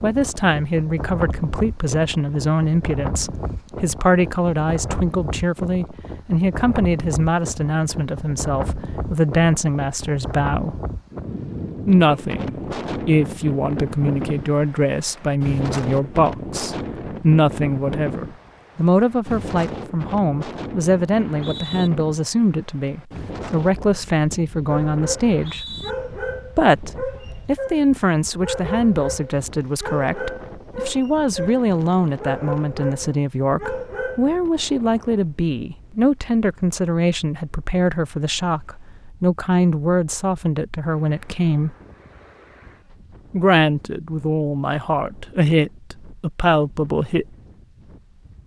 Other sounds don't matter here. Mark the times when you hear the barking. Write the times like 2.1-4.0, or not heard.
24.6-34.4.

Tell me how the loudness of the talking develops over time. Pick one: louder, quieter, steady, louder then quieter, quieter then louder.
steady.